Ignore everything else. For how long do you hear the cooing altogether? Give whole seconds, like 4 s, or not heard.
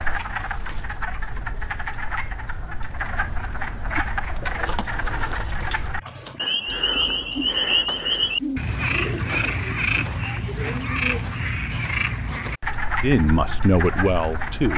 7 s.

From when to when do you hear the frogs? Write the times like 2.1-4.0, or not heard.
0.0-14.7.